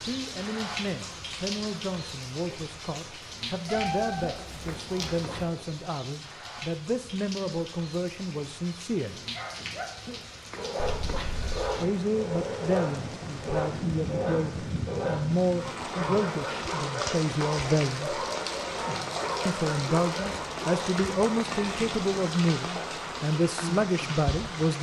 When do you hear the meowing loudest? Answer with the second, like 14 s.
4 s.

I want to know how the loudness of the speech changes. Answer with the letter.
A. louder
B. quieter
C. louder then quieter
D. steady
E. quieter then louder
A.